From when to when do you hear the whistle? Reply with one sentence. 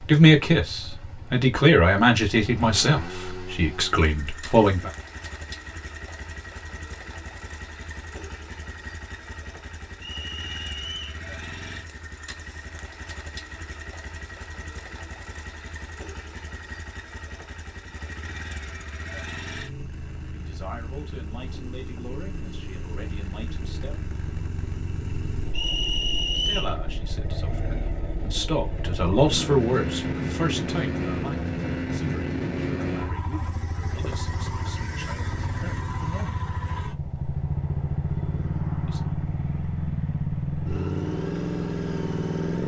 The whistle can be heard from 10.0 to 11.2 s and from 25.5 to 26.8 s.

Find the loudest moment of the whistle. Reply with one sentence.
The volume of the whistle peaks at 26 seconds.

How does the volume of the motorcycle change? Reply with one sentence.
The loudness of the motorcycle goes up.